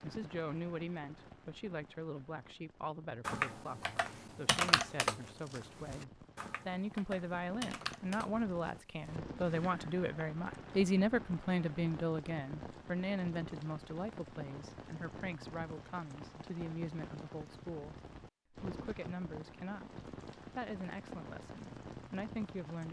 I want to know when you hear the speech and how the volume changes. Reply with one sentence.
You can hear the speech from 0.0 to 22.8 s, getting louder then quieter.